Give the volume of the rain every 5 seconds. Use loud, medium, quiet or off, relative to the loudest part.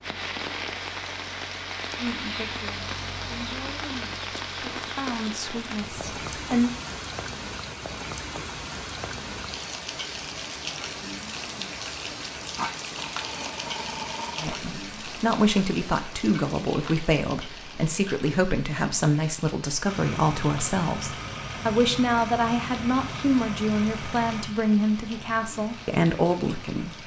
loud, loud, loud, medium, medium, medium.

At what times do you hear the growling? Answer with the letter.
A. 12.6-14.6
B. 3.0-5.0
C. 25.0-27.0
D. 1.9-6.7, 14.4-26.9
A.